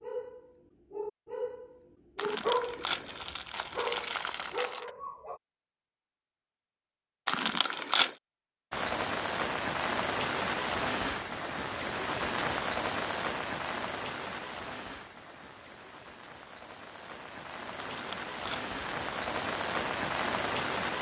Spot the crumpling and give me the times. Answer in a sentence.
The crumpling can be heard from 2.1 to 4.9 s, from 7.2 to 8.2 s and from 17.8 to 18.7 s.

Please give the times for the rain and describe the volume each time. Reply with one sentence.
The rain can be heard from 8.7 to 20.9 s, getting quieter then louder.